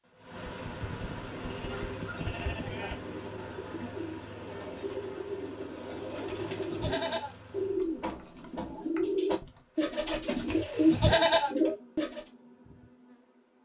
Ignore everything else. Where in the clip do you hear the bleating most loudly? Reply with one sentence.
The loudest moment of the bleating is at 11 seconds.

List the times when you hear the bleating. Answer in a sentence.
You can hear the bleating from 0.5 to 3.0 s, from 6.2 to 7.3 s and from 10.4 to 11.6 s.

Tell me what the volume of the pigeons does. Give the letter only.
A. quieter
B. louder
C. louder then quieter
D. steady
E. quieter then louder
B.